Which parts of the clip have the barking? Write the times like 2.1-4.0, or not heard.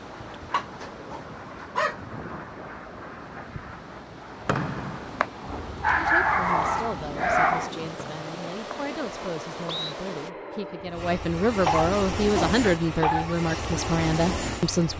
0.5-2.5, 5.6-7.7, 11.7-13.3.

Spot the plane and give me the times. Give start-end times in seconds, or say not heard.
0.0-14.9.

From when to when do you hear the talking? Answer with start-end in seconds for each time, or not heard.
6.0-14.9.